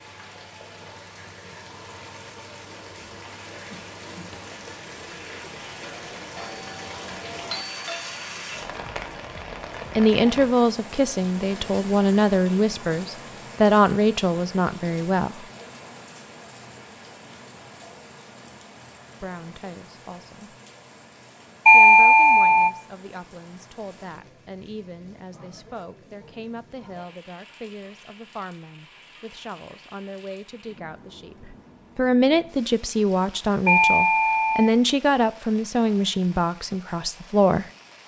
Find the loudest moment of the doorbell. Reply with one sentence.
The loudest moment of the doorbell is at 22 seconds.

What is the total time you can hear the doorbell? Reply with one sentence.
The doorbell can be heard for 4 seconds in total.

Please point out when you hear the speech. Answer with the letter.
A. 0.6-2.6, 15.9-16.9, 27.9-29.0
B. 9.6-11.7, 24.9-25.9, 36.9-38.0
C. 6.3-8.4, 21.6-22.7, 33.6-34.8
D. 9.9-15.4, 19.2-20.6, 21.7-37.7
D.